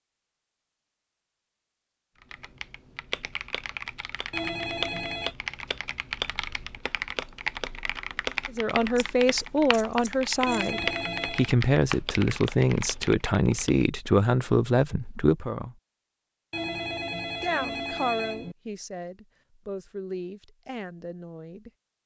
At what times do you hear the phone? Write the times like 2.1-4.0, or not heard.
4.3-5.3, 10.4-11.6, 16.5-18.6.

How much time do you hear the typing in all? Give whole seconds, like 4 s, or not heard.
12 s.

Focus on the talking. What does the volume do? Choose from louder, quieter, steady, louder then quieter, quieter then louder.
quieter.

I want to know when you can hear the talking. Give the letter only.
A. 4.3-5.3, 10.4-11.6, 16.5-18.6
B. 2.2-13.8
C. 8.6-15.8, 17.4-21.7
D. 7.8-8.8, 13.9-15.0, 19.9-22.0
C.